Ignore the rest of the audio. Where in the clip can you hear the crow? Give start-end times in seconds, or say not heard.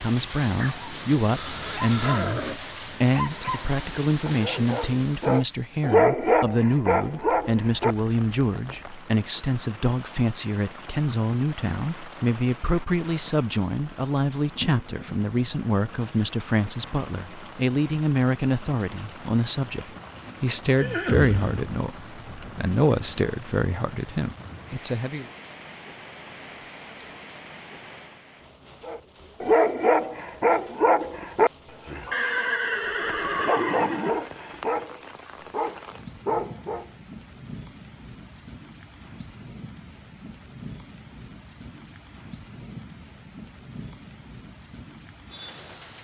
not heard.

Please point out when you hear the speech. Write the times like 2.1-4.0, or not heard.
0.0-25.2.